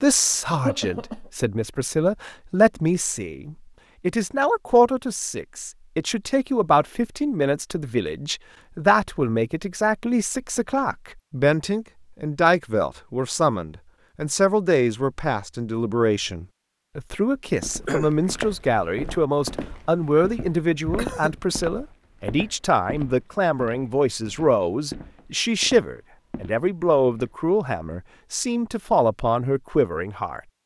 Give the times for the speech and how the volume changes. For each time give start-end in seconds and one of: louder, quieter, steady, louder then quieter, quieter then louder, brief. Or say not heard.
0.0-30.4 steady.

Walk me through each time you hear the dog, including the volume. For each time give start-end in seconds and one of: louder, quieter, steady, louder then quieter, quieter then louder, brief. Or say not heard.
not heard.